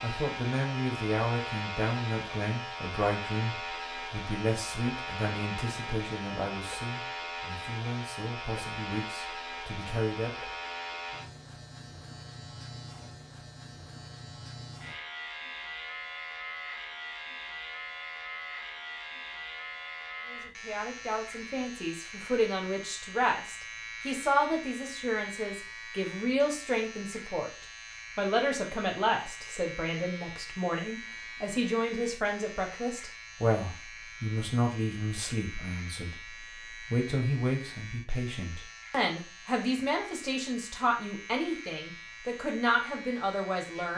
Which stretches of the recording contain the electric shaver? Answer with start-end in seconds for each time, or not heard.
0.0-43.9.